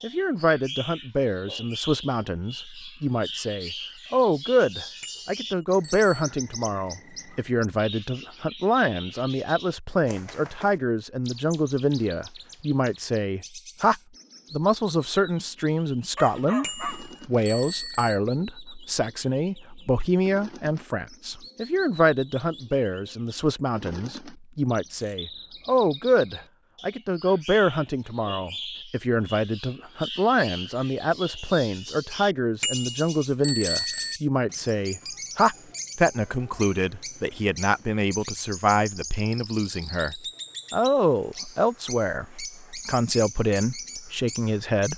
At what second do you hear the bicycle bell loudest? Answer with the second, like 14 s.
34 s.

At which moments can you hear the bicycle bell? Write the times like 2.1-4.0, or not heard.
5.0-6.3, 16.6-18.2, 32.6-34.2.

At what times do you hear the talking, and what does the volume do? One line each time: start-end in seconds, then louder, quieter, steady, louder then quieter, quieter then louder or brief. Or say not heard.
0.0-44.9 steady.